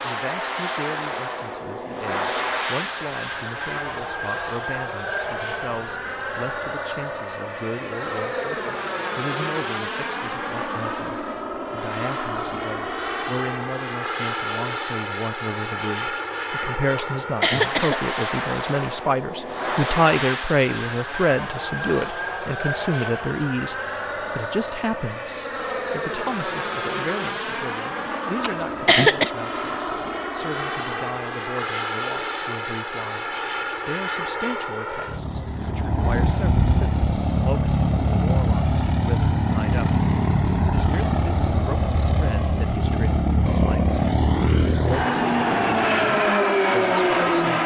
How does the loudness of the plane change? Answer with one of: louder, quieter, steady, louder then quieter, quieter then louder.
louder.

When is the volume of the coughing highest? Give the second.
29 s.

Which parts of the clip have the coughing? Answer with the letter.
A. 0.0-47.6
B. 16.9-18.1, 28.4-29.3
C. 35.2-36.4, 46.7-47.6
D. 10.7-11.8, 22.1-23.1
B.